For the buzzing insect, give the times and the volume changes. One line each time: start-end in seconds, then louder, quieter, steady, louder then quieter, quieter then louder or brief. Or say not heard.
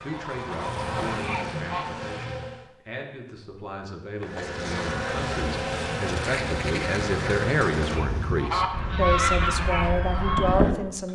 0.0-2.7 brief
4.2-8.8 steady.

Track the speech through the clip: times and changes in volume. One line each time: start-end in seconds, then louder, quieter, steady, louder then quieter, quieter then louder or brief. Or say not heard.
0.0-11.0 louder.